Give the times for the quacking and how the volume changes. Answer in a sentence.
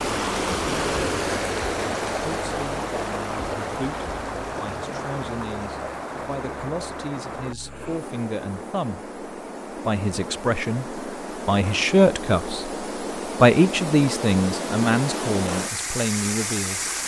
The quacking can't be heard in this clip.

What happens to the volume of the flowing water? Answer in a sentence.
The loudness of the flowing water goes down, then up.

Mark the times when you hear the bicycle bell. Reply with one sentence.
The bicycle bell can't be heard in this clip.